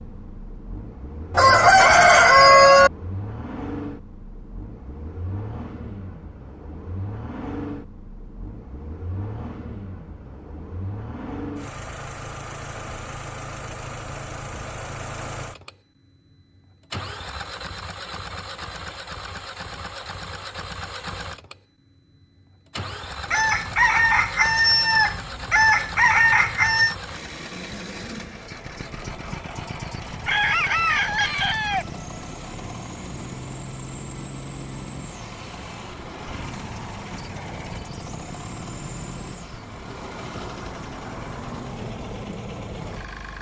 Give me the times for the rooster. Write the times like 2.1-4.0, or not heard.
1.4-2.9, 23.3-26.9, 30.2-31.9.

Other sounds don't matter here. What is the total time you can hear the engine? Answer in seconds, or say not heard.
43 s.